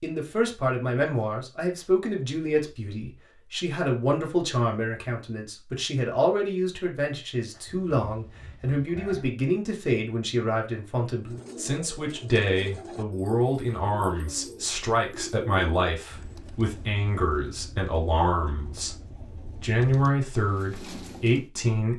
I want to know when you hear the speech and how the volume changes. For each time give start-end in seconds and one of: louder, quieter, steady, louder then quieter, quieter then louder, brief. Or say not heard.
0.0-21.9 steady.